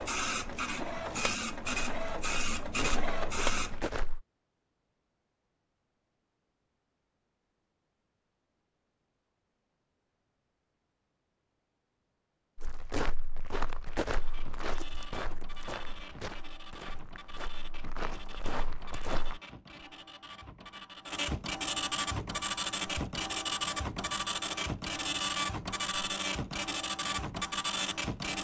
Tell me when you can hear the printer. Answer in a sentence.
The printer can be heard from 0.0 to 3.9 s and from 14.2 to 28.3 s.